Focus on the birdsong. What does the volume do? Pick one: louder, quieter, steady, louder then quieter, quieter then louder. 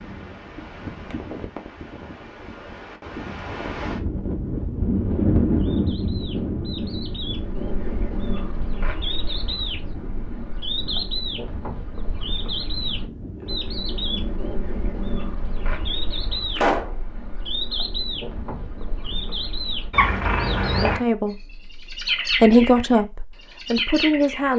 louder.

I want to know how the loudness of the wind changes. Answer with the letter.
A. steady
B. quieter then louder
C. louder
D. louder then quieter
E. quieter
D.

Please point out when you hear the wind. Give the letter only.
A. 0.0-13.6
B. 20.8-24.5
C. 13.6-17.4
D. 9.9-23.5
A.